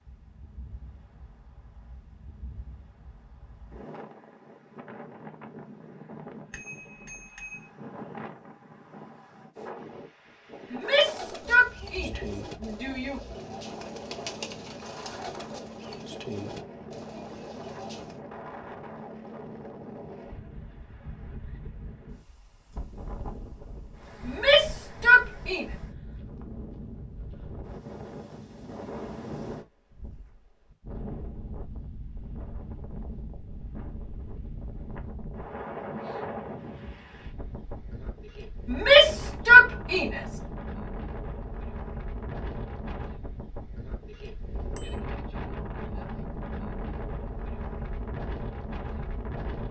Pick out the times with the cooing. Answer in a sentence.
You can hear the cooing from 10.8 to 18.2 s.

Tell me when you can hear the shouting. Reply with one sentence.
The shouting can be heard from 10.7 to 13.2 s, from 24.2 to 25.6 s and from 38.6 to 40.2 s.